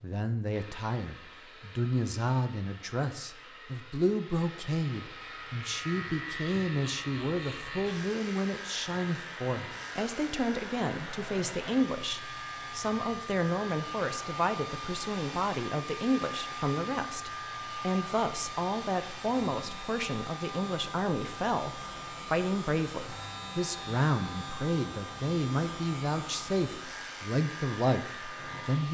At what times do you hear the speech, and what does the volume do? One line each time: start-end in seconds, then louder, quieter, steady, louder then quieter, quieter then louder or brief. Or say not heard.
0.0-28.8 steady.